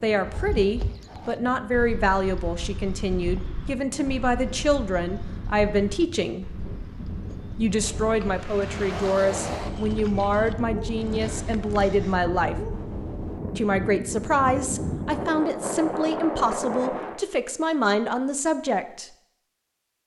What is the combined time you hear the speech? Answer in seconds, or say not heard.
17 s.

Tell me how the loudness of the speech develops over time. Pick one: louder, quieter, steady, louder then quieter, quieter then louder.
steady.